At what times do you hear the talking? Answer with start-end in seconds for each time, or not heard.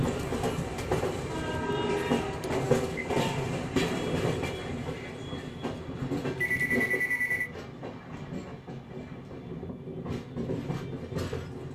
not heard.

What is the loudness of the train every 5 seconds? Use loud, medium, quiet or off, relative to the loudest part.
loud, medium, medium.